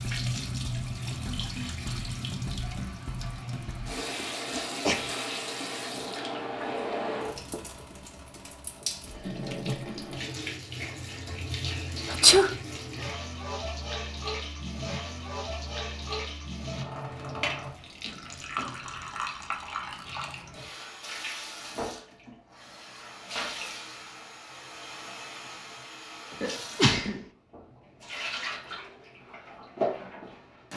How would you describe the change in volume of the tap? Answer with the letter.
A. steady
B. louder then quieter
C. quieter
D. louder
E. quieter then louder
A.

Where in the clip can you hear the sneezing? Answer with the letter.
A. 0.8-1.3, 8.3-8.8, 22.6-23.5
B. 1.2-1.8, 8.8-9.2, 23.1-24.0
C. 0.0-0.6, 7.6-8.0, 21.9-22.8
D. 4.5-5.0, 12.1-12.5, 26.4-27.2
D.